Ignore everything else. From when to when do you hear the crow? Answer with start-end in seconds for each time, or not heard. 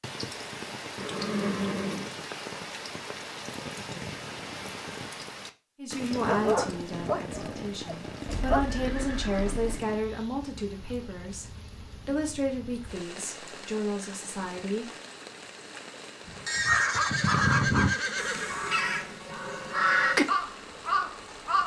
16.6-21.6.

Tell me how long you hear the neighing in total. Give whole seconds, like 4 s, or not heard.
5 s.